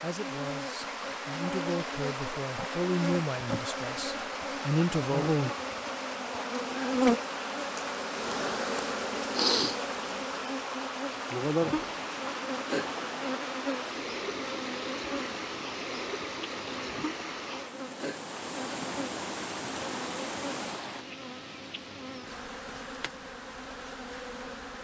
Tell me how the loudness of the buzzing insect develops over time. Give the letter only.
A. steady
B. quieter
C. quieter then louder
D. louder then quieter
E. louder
D.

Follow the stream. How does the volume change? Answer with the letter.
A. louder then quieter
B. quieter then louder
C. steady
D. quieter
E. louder
C.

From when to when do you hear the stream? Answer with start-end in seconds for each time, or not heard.
0.0-21.1.